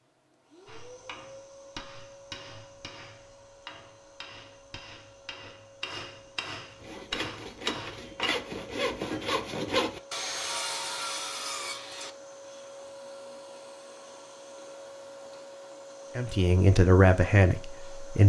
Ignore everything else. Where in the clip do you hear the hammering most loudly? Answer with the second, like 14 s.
8 s.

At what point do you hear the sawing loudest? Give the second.
10 s.